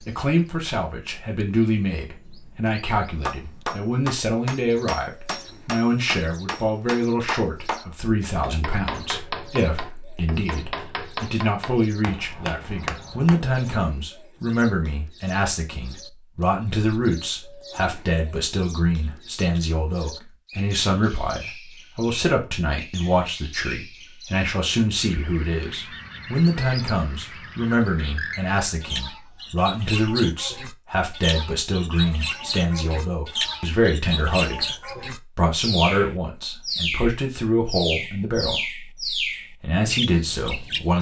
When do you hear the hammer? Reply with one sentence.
You can hear the hammer from 3.2 to 13.4 s.